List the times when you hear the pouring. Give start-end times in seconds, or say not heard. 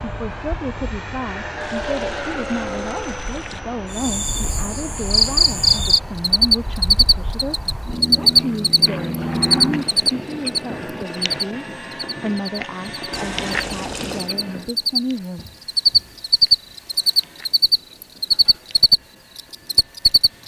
1.6-3.6, 13.1-14.3.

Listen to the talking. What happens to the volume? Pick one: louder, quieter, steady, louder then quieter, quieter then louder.
steady.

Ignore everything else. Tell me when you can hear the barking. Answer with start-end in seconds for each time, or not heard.
not heard.